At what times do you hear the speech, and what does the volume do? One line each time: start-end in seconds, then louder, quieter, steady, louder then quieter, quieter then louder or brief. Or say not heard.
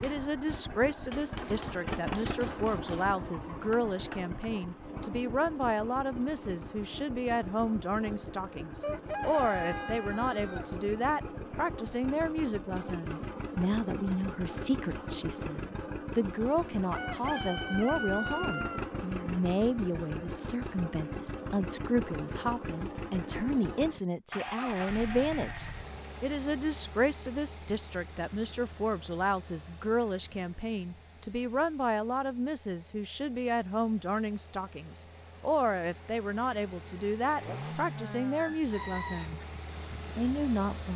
0.0-39.5 steady
40.1-40.9 brief.